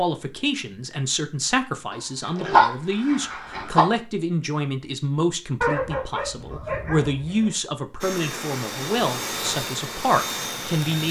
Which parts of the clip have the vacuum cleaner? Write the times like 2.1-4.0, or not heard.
8.0-11.0.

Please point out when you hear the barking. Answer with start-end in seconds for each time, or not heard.
1.9-3.9, 5.6-7.5.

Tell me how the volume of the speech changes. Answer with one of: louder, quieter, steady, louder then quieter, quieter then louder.
steady.